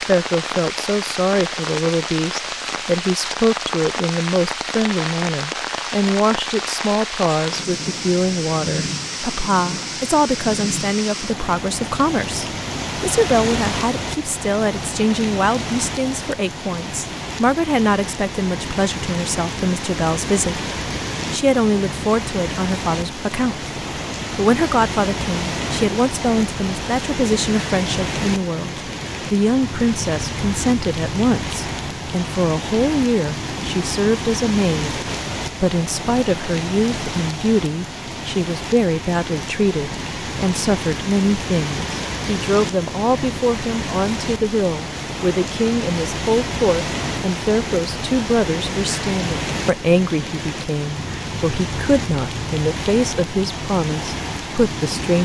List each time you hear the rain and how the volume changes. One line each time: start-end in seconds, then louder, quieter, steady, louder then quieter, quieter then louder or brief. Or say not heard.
0.0-55.1 steady.